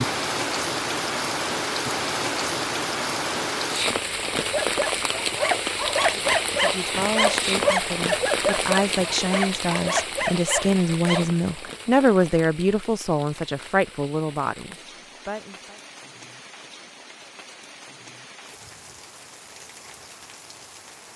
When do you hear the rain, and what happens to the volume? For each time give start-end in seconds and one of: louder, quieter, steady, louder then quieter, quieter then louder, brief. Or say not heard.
0.0-21.1 quieter.